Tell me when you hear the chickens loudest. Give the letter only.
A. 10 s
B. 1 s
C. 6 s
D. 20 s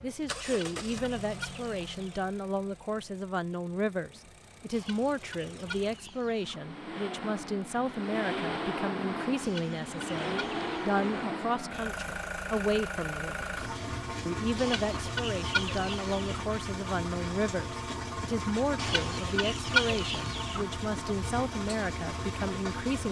D.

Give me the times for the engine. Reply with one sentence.
The engine can be heard from 0.0 to 23.0 s.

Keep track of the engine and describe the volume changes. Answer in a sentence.
The volume of the engine goes up.